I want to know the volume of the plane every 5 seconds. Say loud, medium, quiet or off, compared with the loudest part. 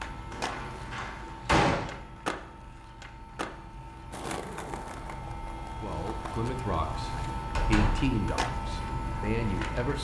medium, loud.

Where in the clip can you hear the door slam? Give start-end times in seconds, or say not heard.
0.3-1.9, 7.5-8.1.